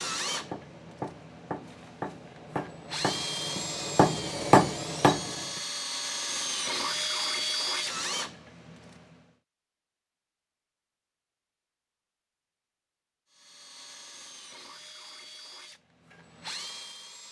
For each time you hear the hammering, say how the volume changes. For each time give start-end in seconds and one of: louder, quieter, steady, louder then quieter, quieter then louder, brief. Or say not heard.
0.2-5.6 louder.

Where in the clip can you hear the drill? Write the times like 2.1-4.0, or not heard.
0.0-9.2, 13.3-17.2.